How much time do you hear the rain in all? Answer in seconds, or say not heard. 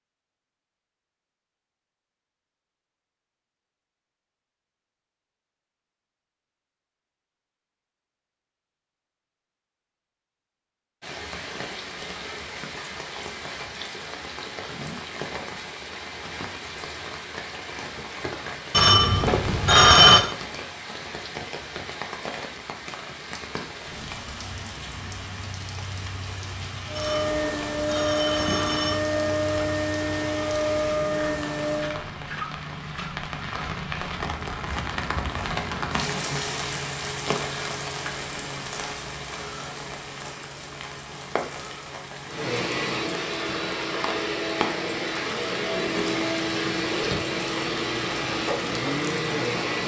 39 s.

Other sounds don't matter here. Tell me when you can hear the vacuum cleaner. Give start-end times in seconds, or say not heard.
26.9-32.0, 42.2-49.8.